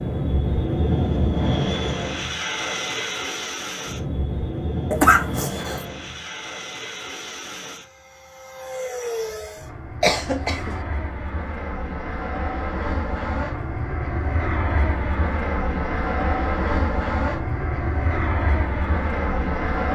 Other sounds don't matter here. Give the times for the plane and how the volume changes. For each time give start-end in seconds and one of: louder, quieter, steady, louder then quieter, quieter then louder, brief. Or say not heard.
0.0-19.8 quieter then louder.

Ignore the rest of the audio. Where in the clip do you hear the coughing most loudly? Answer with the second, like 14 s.
5 s.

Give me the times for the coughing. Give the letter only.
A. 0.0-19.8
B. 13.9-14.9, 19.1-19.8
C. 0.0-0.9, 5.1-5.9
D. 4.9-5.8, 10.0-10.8
D.